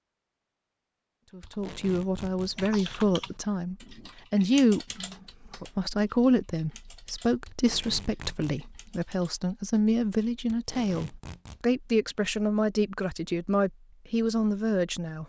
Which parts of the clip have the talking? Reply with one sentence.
You can hear the talking from 1.3 to 15.2 s.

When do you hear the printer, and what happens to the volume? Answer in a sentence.
You can't hear the printer here.